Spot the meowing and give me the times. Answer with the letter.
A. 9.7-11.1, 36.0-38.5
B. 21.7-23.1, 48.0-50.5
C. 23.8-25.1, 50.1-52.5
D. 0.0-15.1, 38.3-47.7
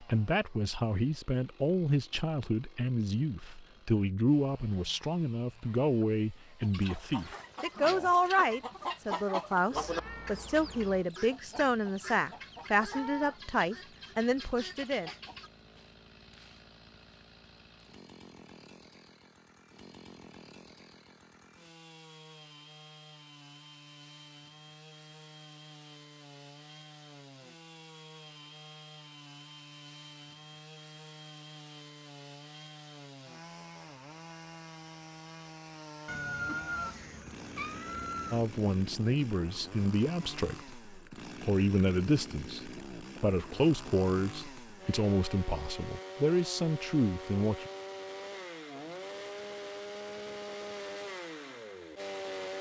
A.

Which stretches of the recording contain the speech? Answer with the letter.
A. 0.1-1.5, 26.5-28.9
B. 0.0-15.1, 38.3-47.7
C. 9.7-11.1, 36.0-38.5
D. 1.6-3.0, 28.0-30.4
B.